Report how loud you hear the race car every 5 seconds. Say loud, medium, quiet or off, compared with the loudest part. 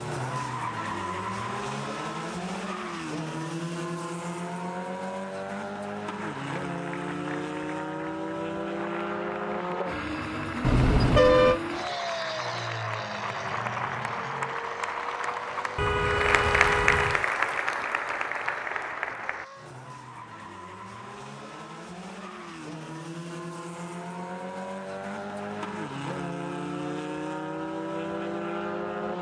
loud, loud, loud, medium, medium, loud.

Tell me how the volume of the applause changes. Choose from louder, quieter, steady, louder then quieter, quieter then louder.
louder.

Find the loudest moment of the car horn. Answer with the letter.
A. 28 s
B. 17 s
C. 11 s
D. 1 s
C.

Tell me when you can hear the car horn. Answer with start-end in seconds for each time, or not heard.
10.6-11.6, 15.8-17.2.